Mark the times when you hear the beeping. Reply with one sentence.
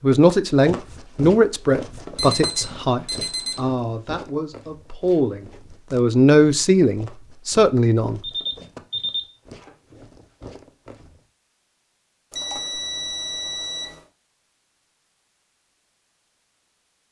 The beeping can be heard from 2.1 to 3.6 s, from 8.2 to 9.7 s and from 12.3 to 14.0 s.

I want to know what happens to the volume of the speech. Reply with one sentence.
The loudness of the speech goes down, then up.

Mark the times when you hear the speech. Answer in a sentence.
The speech can be heard from 0.0 to 8.2 s.